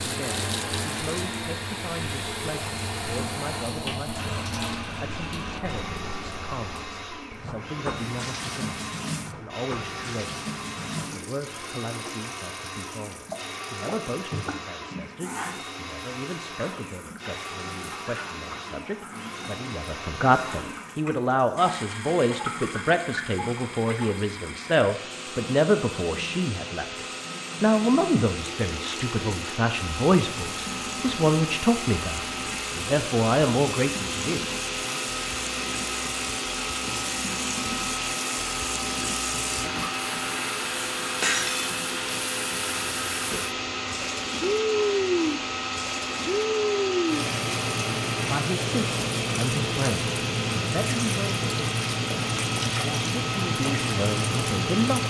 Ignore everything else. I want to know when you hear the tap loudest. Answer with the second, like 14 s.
45 s.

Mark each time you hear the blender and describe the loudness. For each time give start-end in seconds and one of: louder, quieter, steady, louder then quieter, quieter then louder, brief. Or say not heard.
0.0-55.0 louder.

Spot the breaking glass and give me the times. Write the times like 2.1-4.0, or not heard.
41.2-41.8.